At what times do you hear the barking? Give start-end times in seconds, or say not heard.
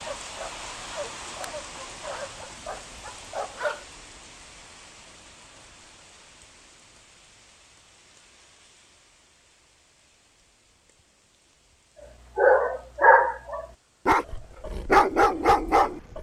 0.0-3.9, 12.3-16.1.